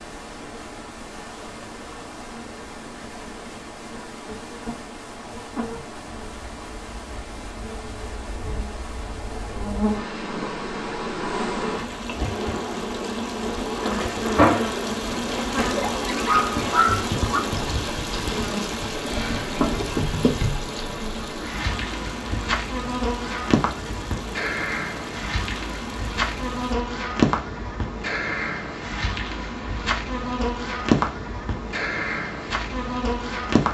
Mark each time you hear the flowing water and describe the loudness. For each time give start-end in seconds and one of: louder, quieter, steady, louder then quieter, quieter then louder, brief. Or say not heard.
0.0-26.8 louder then quieter.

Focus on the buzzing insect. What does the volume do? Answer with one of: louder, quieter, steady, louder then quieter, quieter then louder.
louder.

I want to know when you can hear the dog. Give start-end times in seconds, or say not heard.
15.8-17.4.